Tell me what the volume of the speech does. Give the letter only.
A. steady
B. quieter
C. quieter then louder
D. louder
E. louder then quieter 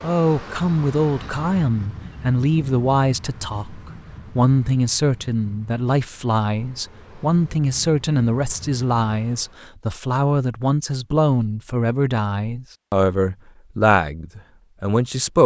A.